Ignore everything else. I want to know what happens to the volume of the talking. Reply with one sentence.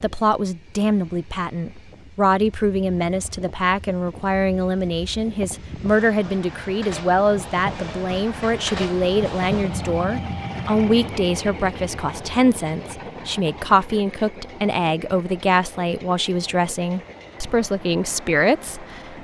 The loudness of the talking stays about the same.